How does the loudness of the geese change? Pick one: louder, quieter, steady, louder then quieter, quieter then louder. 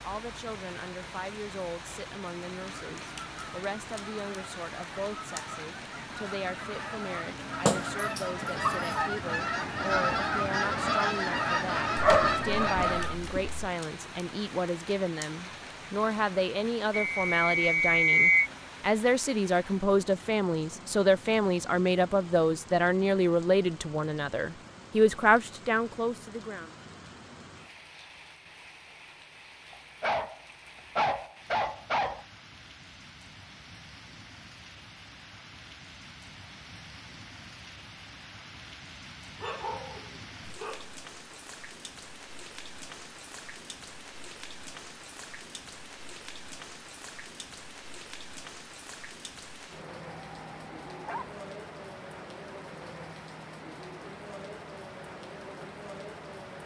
louder.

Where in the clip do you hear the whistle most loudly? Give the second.
18 s.